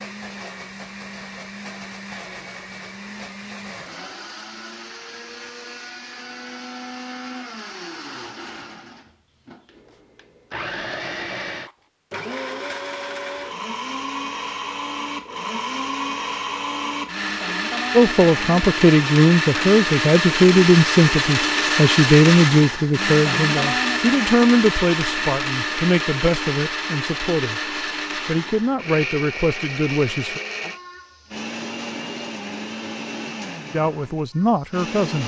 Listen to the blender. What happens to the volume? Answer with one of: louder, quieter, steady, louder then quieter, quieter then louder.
louder then quieter.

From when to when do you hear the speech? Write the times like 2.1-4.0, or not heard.
17.9-30.4, 33.7-35.2.